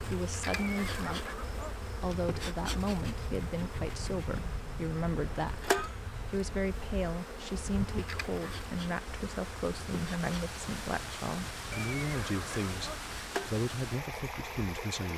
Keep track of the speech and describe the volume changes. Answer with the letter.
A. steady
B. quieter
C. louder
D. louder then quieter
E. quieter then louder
A.